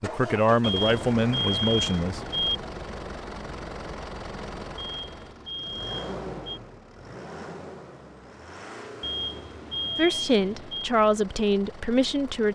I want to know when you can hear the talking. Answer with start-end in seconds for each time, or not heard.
0.0-2.2, 9.9-12.5.